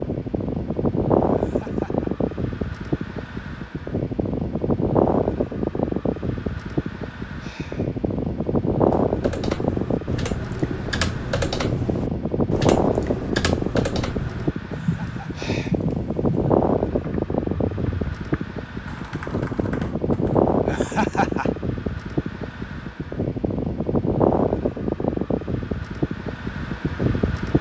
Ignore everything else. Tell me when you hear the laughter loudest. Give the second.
21 s.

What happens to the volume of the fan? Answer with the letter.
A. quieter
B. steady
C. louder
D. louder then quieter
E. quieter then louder
B.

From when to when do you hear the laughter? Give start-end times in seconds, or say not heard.
1.3-2.1, 14.8-15.4, 20.6-21.5.